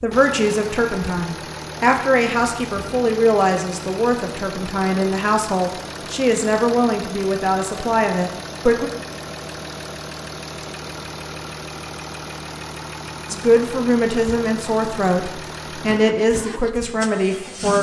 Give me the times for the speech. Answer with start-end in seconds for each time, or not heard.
0.0-8.9, 13.3-17.7.